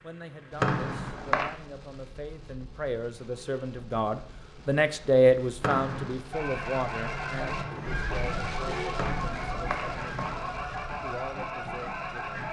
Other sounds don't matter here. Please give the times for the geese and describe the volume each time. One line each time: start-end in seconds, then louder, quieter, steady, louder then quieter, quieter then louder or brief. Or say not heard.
6.3-12.4 steady.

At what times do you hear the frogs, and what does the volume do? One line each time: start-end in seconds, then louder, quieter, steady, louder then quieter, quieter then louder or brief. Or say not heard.
not heard.